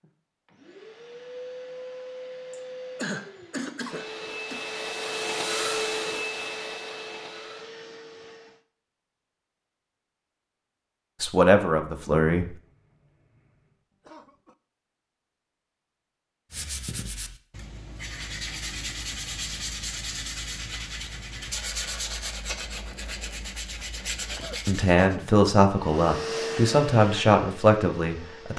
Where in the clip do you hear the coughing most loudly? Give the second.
3 s.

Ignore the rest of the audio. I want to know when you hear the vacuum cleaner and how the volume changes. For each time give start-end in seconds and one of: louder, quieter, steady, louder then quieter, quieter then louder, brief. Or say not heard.
0.0-8.6 louder then quieter
25.7-28.5 brief.